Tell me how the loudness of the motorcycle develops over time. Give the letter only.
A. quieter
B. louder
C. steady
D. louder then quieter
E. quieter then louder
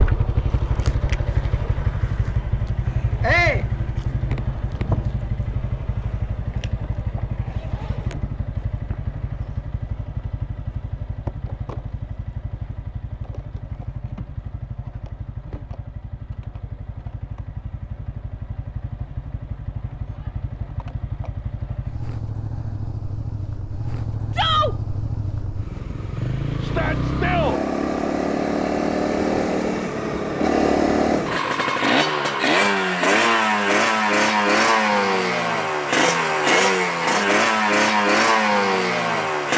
E.